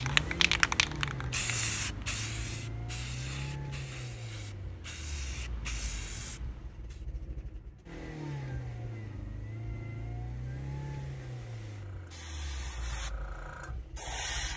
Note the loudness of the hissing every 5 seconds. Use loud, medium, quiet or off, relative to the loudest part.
loud, medium, medium.